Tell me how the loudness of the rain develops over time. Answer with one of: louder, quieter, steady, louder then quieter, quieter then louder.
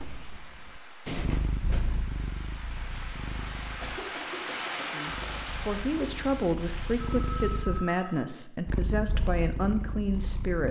louder then quieter.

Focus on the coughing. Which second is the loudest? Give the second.
4 s.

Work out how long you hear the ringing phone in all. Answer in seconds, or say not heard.
2 s.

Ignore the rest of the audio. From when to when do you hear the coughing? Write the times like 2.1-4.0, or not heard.
3.8-5.4.